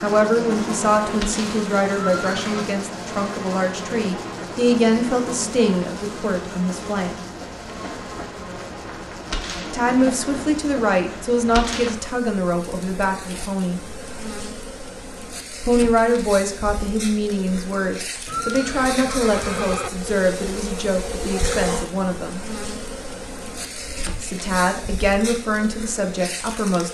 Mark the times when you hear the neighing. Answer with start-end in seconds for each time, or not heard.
1.9-2.7, 18.2-19.9.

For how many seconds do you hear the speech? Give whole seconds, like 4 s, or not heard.
21 s.